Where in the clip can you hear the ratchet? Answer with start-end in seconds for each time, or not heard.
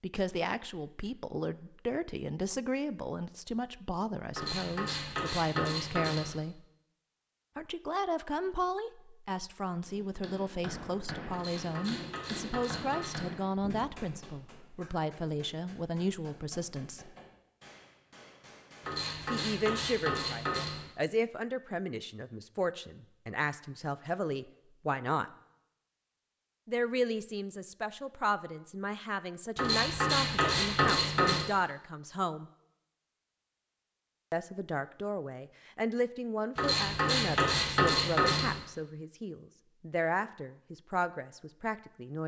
4.3-6.3, 11.3-13.3, 18.8-20.9, 29.6-31.4, 36.5-38.5.